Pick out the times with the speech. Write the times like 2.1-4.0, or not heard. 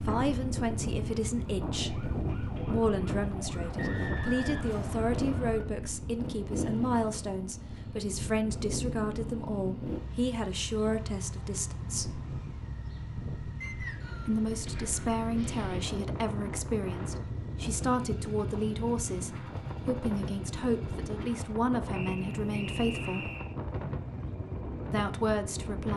0.1-12.2, 14.2-23.3, 24.9-25.9.